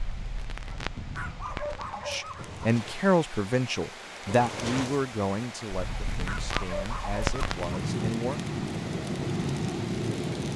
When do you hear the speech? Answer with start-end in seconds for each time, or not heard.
2.0-8.4.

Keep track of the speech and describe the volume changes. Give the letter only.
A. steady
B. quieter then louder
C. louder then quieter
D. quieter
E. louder
D.